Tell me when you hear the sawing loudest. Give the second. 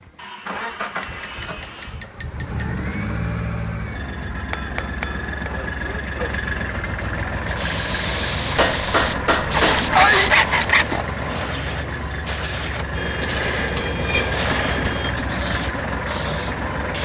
10 s.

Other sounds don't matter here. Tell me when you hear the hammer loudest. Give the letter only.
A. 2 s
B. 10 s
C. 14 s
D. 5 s
B.